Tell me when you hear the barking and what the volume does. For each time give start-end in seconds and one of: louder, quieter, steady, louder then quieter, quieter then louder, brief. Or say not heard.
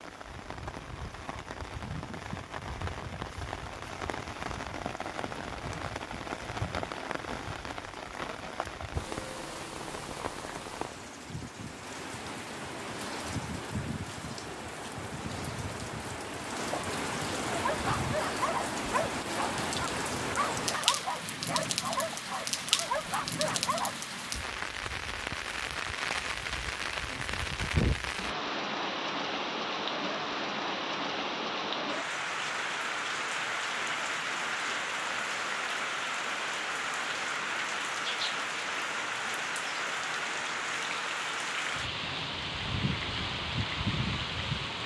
17.5-23.9 quieter then louder.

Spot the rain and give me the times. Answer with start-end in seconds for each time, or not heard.
0.0-44.8.